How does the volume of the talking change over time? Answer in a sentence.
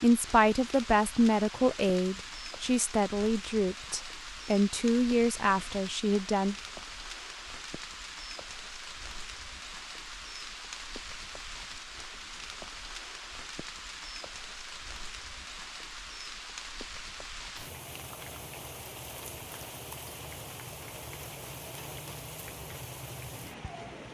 The volume of the talking stays about the same.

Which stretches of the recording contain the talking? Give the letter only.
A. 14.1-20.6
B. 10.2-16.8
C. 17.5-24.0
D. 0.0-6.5
D.